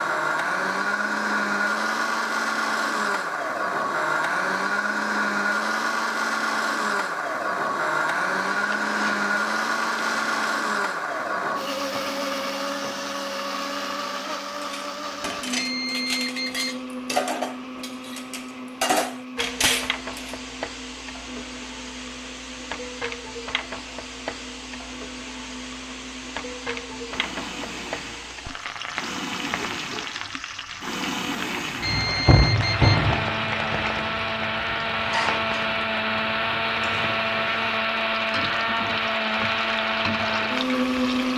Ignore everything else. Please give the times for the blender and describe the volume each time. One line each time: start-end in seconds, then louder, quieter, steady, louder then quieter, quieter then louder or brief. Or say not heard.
0.0-41.3 quieter then louder.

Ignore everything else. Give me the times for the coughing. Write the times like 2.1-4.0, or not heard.
not heard.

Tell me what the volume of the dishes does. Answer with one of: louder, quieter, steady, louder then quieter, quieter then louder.
louder.